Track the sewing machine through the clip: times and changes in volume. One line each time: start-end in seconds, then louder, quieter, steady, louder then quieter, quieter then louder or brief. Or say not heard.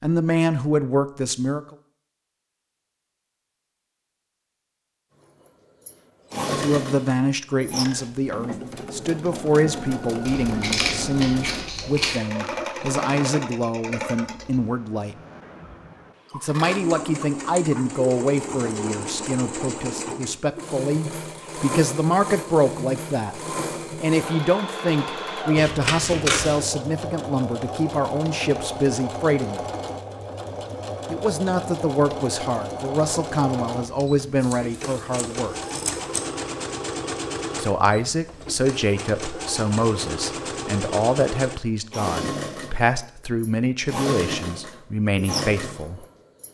5.5-46.4 steady.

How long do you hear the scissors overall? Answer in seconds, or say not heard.
5 s.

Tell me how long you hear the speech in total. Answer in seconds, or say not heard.
36 s.